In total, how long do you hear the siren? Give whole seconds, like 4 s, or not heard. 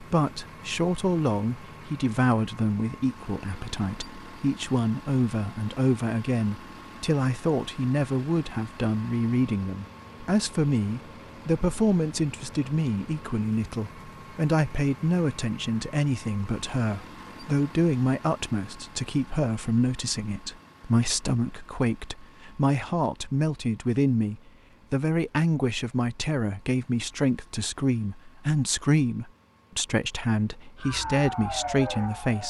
2 s.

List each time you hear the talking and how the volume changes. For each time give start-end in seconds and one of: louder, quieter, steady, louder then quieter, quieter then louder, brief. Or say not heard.
0.0-32.4 steady.